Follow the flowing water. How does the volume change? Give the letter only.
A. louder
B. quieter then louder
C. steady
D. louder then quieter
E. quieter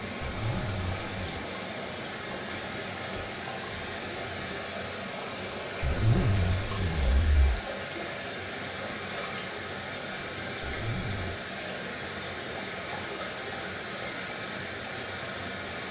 C.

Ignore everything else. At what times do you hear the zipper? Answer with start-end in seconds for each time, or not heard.
0.2-1.4, 5.8-7.6, 10.6-11.4.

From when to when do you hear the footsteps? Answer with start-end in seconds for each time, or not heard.
not heard.